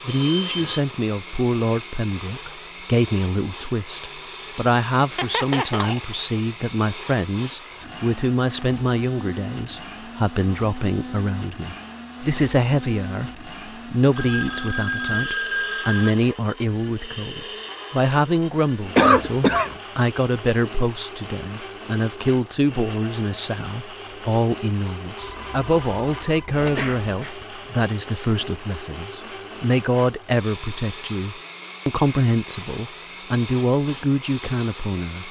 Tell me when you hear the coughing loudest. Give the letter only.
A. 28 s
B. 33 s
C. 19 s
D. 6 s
C.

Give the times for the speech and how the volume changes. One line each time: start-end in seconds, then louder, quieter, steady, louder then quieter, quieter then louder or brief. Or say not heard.
0.1-35.2 steady.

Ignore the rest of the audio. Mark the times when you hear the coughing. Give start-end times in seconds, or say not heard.
5.2-6.0, 18.9-19.8, 26.6-27.4.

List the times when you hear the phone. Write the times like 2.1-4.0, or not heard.
0.1-0.8, 14.2-16.1, 25.1-26.9.